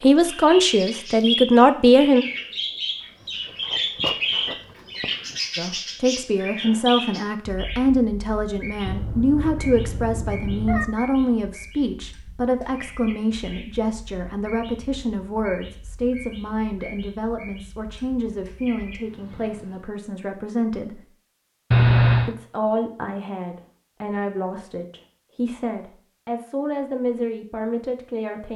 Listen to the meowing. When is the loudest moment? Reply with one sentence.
The volume of the meowing peaks at 22 seconds.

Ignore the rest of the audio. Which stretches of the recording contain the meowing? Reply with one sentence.
You can hear the meowing from 8.8 to 10.8 s and from 21.7 to 22.4 s.